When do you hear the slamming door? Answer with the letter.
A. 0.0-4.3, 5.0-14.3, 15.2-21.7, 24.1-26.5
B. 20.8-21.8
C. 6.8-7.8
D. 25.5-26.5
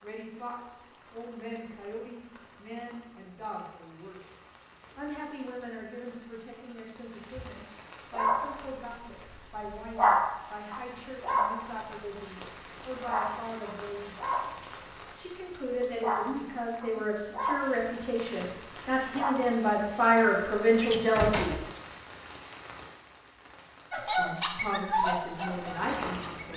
B.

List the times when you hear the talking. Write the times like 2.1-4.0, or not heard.
0.0-4.3, 5.0-14.3, 15.2-21.7, 24.1-26.5.